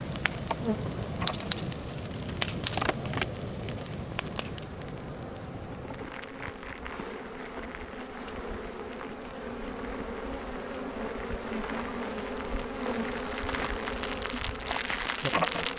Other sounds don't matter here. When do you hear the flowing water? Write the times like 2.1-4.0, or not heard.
not heard.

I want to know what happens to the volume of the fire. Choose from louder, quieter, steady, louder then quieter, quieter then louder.
quieter then louder.